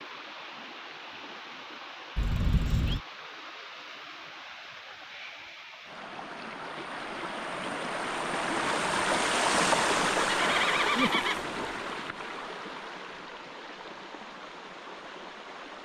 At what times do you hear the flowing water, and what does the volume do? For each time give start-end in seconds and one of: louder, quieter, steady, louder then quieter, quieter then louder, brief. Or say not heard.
0.0-15.8 louder then quieter.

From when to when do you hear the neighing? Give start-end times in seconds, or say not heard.
2.1-3.0, 10.2-11.4.